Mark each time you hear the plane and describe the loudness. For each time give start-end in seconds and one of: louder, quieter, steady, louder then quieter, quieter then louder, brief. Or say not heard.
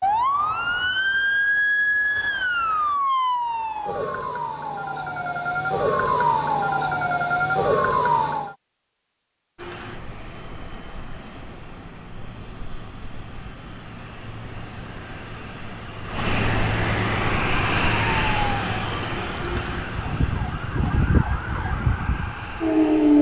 9.6-23.1 louder then quieter.